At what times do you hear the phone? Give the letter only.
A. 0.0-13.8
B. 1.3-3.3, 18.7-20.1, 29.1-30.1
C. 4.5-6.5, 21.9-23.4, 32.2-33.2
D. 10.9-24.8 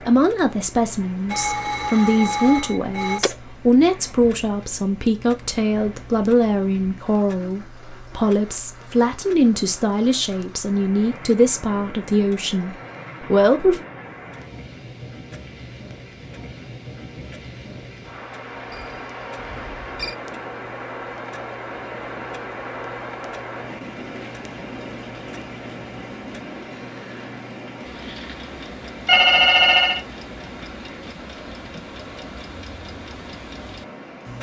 B.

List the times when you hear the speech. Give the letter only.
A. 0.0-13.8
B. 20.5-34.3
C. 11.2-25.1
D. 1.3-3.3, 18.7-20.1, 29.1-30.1
A.